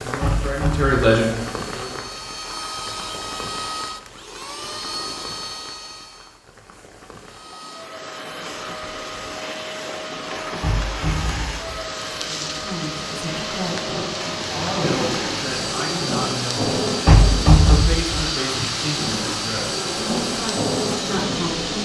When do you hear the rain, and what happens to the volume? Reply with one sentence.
You can hear the rain from 0.0 to 21.8 s, getting quieter then louder.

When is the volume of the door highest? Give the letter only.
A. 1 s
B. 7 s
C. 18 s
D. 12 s
C.